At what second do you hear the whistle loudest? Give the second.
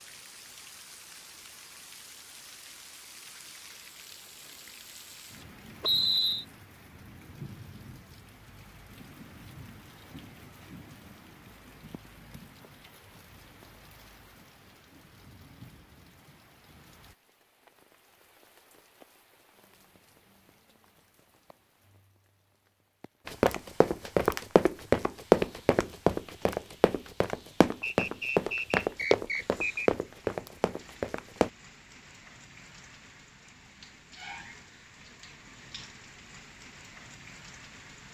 6 s.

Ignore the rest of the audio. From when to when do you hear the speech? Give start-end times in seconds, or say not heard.
not heard.